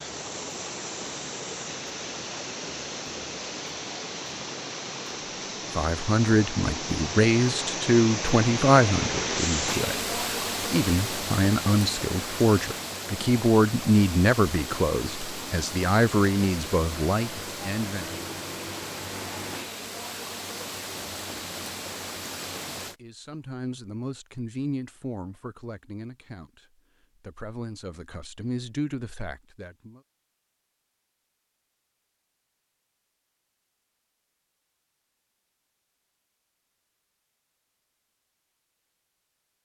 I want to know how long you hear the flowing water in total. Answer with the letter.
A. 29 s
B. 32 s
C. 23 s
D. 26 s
C.